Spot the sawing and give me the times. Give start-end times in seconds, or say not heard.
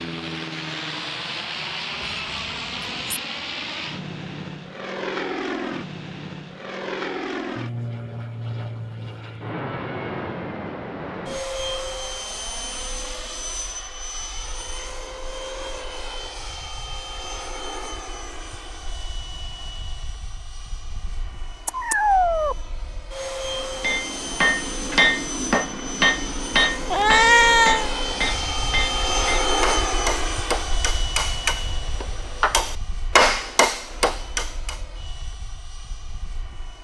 not heard.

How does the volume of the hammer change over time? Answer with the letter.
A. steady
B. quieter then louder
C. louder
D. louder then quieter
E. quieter
B.